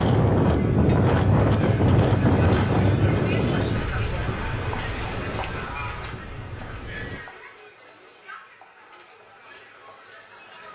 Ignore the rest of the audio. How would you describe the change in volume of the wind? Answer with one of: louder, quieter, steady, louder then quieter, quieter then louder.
quieter.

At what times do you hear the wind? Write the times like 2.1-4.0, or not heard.
0.0-7.2.